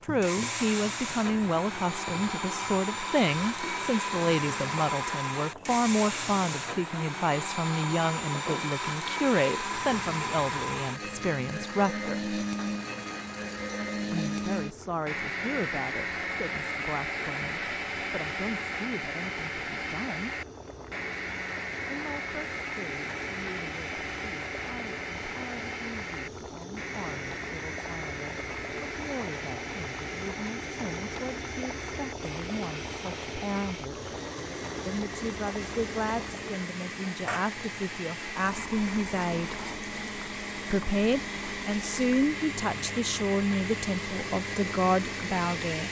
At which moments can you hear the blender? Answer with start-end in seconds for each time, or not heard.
0.0-45.8.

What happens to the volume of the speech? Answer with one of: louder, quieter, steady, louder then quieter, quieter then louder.
quieter then louder.